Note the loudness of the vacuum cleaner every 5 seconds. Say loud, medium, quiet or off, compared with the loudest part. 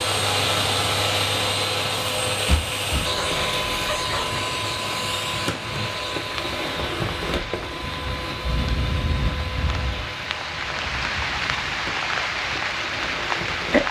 loud, medium, medium.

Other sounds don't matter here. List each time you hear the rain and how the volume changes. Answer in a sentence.
The rain can be heard from 0.0 to 13.8 s, getting louder.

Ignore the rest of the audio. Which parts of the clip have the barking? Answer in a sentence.
The barking can be heard from 3.1 to 4.4 s.